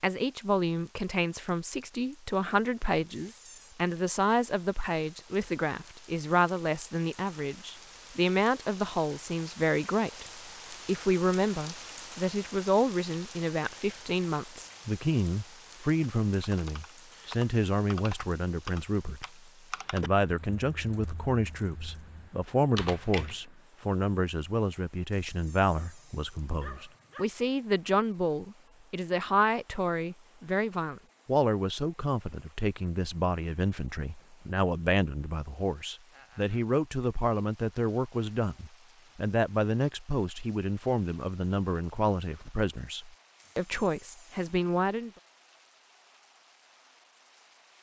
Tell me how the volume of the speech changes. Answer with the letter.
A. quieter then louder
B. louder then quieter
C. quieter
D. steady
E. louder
D.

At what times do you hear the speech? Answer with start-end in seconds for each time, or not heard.
0.0-10.2, 10.8-19.2, 19.9-45.1.